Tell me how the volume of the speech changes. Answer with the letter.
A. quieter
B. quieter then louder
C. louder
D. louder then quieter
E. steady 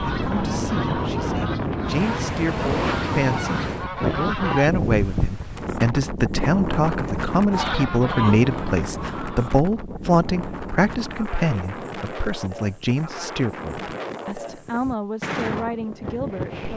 D.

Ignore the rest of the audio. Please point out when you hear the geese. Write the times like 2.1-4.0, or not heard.
0.0-4.7, 7.5-9.6.